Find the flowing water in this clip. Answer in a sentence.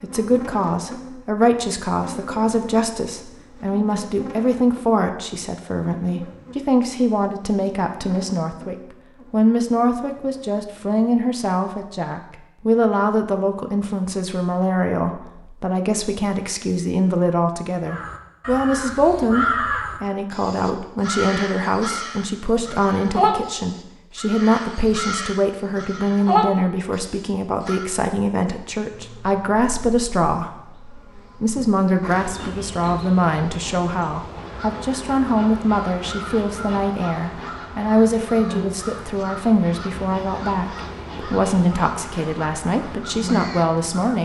You can't hear the flowing water here.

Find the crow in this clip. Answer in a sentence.
You can hear the crow from 17.9 to 27.9 s and from 34.3 to 44.0 s.